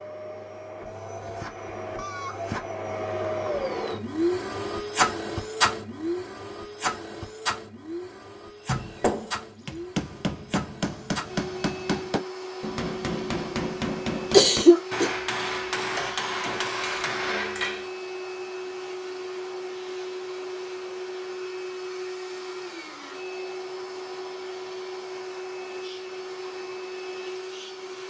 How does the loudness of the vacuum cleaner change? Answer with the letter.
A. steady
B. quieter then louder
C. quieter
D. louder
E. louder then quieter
C.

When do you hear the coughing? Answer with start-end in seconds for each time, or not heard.
14.3-15.1.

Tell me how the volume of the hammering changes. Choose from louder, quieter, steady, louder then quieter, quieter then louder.
steady.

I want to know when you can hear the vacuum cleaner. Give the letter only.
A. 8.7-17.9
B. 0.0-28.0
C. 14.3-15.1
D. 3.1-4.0
B.